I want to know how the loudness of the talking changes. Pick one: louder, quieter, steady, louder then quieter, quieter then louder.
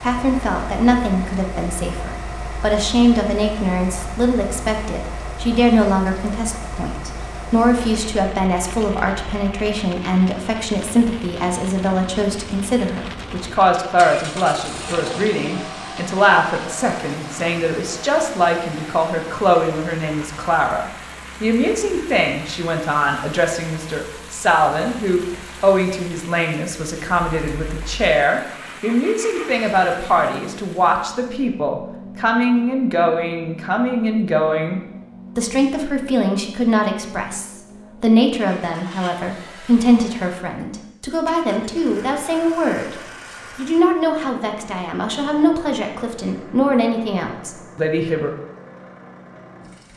steady.